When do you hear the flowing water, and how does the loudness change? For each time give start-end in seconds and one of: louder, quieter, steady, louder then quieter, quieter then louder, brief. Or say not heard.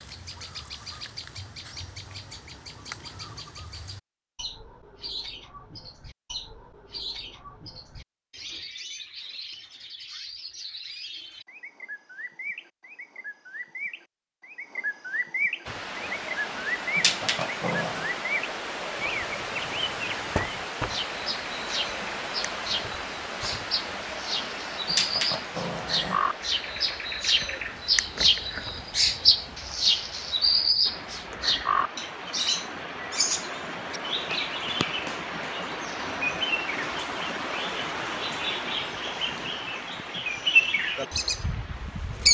15.7-42.2 quieter then louder.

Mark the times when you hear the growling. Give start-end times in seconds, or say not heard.
16.9-18.1, 24.9-26.2.